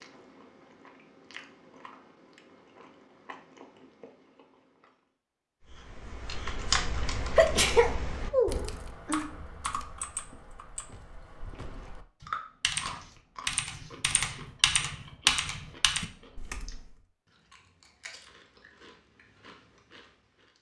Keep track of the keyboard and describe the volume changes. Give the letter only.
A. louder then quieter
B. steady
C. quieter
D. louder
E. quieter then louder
E.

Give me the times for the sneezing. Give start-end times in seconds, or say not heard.
7.3-9.2.